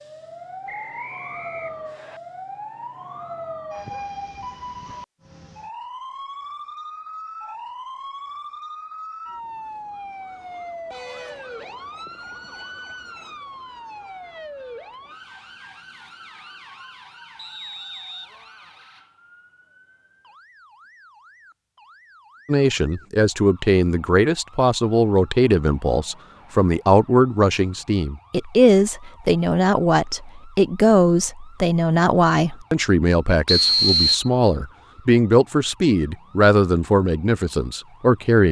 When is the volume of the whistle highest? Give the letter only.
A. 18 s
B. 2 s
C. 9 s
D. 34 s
D.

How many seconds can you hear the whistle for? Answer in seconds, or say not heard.
3 s.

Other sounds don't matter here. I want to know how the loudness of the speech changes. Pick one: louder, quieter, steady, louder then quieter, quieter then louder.
steady.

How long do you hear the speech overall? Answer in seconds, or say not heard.
16 s.